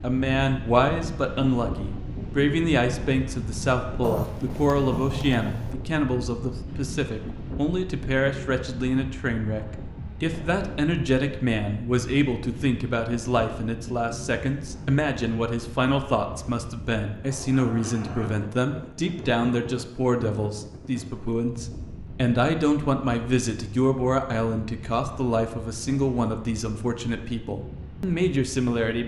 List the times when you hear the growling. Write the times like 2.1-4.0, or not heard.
4.0-5.8, 17.2-18.4.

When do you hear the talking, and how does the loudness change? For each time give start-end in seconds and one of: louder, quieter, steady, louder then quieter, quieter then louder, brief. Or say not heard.
0.0-29.0 steady.